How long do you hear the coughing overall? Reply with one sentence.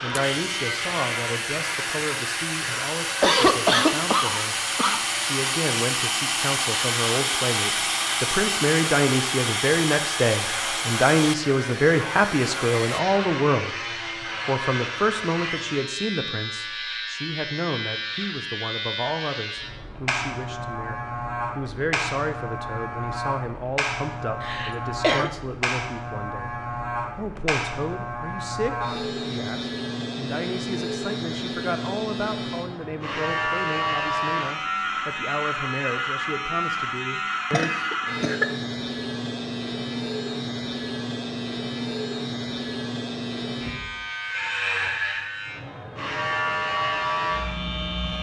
The coughing can be heard for 4 seconds in total.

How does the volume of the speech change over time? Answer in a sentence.
The loudness of the speech goes up, then down.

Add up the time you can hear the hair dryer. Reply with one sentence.
The hair dryer can be heard for 13 seconds in total.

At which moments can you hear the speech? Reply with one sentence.
The speech can be heard from 0.0 to 4.5 s, from 5.2 to 13.8 s and from 14.4 to 37.7 s.